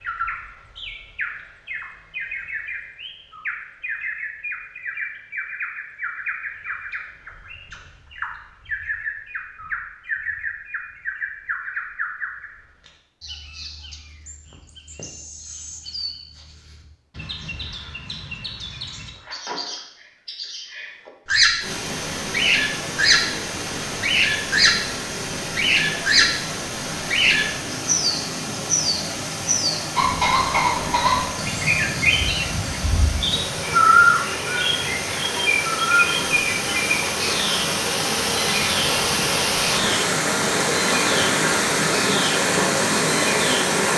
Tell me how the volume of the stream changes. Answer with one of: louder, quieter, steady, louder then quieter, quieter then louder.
louder.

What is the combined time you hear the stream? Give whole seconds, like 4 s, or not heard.
22 s.